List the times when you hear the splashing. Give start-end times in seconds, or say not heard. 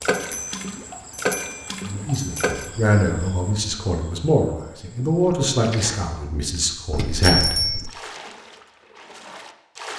0.0-2.6, 5.2-9.9.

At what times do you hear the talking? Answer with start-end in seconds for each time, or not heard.
1.9-7.6.